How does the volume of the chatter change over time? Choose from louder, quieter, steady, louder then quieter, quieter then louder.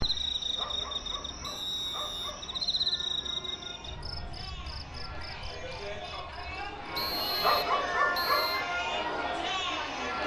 louder.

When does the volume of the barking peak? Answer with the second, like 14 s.
8 s.